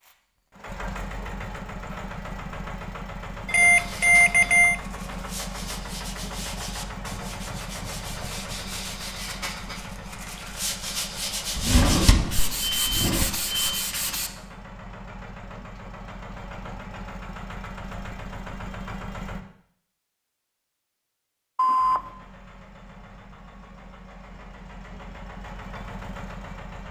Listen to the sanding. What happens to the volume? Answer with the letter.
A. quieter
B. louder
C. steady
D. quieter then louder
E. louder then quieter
B.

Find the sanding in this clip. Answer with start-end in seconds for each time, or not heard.
3.7-14.3.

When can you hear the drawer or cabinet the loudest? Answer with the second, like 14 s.
12 s.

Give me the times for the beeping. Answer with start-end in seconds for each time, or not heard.
3.5-4.8, 12.4-13.8, 21.6-22.1.